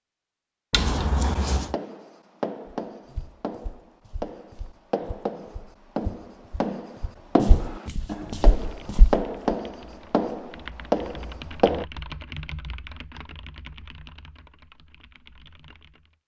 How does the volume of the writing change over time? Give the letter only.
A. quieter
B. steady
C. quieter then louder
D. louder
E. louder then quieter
D.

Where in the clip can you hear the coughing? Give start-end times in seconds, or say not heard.
0.7-1.8.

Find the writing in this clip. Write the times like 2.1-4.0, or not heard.
1.5-11.8.